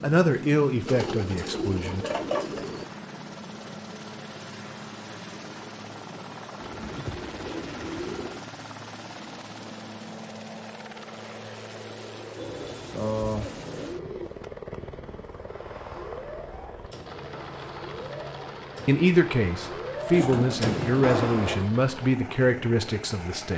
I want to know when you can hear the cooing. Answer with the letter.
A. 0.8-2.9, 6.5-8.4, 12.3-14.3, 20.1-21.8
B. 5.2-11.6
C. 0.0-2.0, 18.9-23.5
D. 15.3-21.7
A.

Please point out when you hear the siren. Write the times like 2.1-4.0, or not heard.
15.3-21.7.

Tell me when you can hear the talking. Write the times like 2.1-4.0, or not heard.
0.0-2.0, 18.9-23.5.